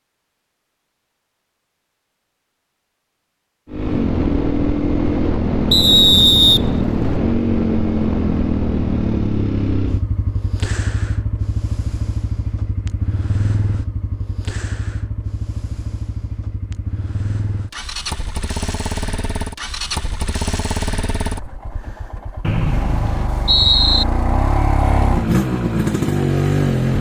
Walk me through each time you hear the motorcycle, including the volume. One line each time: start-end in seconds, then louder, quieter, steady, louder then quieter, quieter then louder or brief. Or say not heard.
3.7-26.9 quieter then louder.